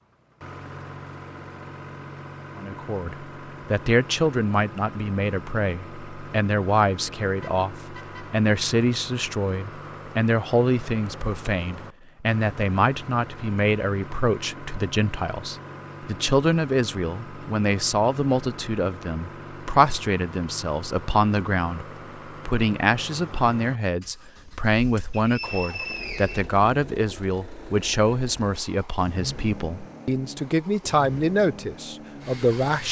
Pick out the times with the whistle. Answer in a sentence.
The whistle can be heard from 25.1 to 26.6 s.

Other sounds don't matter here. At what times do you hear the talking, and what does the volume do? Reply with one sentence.
The talking can be heard from 2.5 to 32.8 s, at a steady volume.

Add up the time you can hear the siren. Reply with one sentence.
The siren can't be heard in this clip.